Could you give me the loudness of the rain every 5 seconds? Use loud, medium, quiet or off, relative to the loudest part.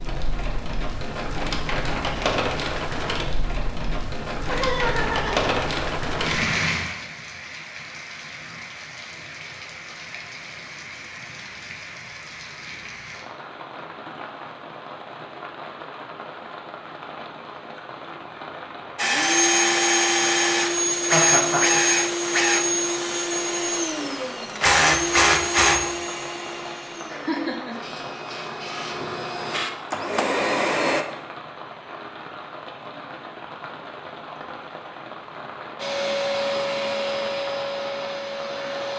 loud, loud, medium, medium, medium, medium, medium, medium.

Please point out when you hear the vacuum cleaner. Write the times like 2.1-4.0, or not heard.
18.9-31.1, 35.8-38.9.